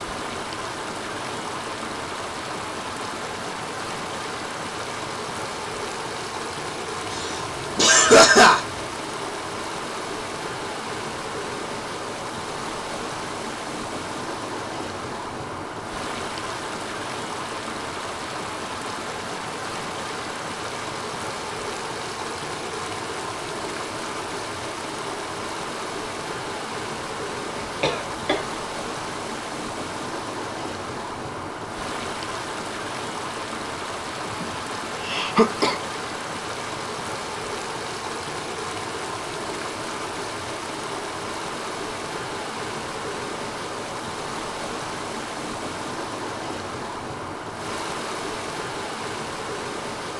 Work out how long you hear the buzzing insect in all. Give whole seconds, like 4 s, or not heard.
not heard.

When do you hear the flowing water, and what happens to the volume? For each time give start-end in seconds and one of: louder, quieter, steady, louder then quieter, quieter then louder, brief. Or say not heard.
0.0-50.1 steady.